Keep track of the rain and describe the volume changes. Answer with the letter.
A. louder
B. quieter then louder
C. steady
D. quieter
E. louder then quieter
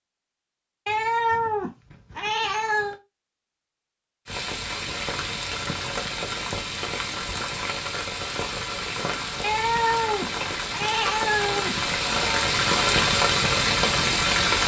A.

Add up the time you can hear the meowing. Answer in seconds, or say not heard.
5 s.